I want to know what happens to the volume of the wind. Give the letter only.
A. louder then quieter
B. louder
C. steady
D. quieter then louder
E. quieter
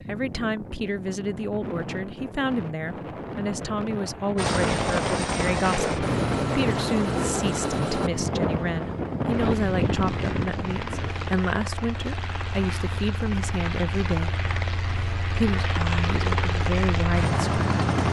B.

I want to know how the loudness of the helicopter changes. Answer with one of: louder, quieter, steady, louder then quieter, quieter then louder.
quieter then louder.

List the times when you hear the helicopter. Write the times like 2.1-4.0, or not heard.
4.3-18.0.